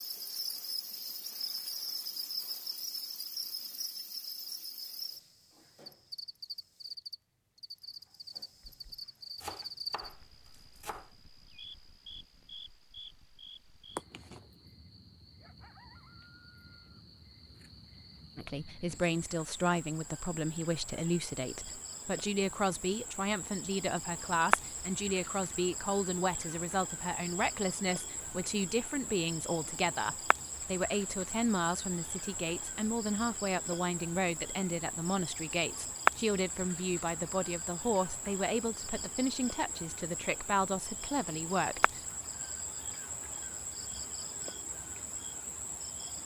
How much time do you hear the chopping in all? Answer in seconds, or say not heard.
2 s.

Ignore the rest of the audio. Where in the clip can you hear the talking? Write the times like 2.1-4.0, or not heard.
18.4-42.0.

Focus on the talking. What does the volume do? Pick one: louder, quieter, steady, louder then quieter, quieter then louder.
steady.